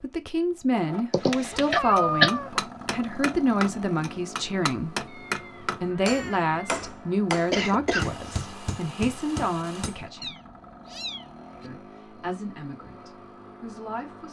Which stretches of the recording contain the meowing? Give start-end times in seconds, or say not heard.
1.5-2.6, 5.0-6.8, 10.2-11.7.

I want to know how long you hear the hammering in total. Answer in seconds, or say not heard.
9 s.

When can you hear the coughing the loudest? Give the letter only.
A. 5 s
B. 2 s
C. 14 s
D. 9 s
B.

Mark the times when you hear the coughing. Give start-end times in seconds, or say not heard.
1.1-2.3, 7.5-8.6.